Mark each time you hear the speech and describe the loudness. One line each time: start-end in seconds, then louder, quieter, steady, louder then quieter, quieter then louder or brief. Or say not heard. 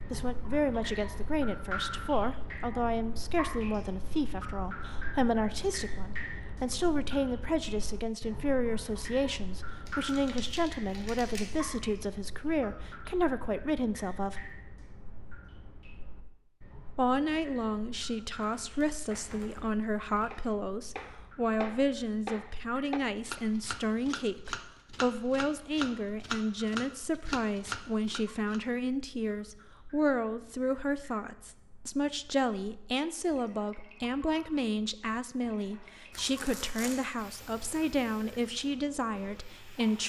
0.1-14.5 steady
16.9-40.0 steady.